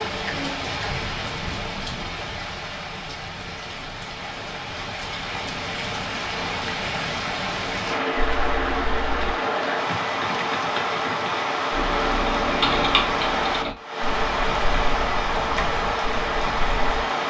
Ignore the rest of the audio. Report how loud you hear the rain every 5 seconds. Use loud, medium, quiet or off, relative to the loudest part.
medium, loud, loud, loud.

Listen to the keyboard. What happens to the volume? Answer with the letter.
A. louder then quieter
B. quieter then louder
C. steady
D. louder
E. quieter
A.